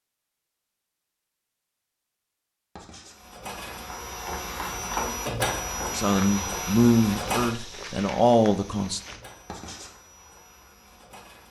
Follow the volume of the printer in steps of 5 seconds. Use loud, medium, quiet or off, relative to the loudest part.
loud, loud, quiet.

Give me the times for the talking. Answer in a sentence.
You can hear the talking from 6.0 to 9.0 s.